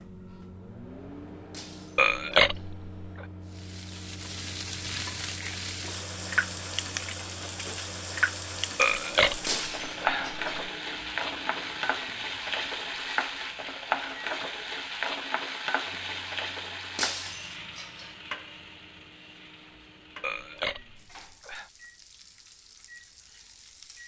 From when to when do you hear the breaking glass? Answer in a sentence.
You can hear the breaking glass from 1.5 to 2.7 s, from 9.4 to 10.5 s and from 16.9 to 18.1 s.